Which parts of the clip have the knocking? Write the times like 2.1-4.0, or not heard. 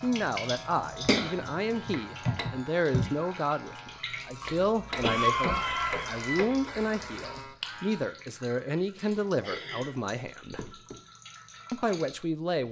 1.9-2.5, 4.5-6.5, 10.6-11.0.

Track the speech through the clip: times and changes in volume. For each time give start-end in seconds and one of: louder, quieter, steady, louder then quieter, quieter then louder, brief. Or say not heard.
0.0-10.7 steady
11.7-12.6 brief.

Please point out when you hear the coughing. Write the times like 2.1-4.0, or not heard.
1.0-2.6, 5.0-6.4, 8.9-10.1.